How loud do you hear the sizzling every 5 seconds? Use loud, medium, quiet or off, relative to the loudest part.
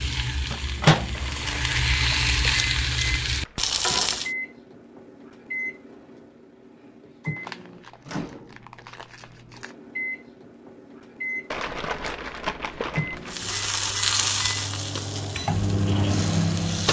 loud, off, loud, medium.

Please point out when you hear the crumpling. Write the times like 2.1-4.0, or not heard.
1.1-3.8, 7.3-9.8, 11.5-13.3.